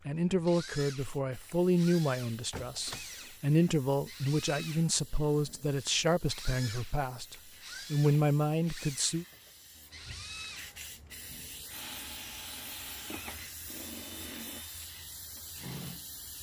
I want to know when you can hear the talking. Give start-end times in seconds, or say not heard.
0.1-9.2.